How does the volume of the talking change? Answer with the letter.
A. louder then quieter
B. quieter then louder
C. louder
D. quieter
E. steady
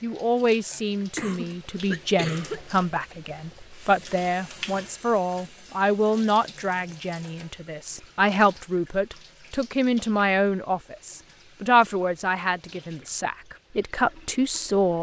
E.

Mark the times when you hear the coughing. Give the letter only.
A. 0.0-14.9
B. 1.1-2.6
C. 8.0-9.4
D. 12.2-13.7
B.